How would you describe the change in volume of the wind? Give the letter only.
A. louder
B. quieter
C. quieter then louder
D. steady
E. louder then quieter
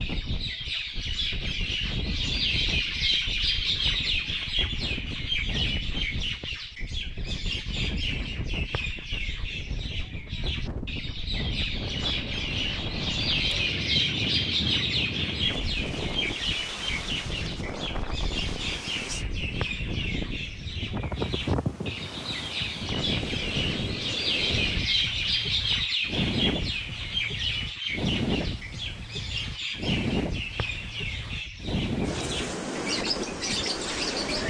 A.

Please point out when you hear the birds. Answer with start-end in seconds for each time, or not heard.
0.0-34.4.